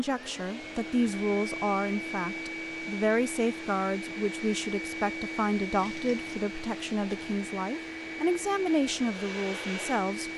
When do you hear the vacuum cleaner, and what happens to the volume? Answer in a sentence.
The vacuum cleaner can be heard from 0.0 to 10.3 s, at a steady volume.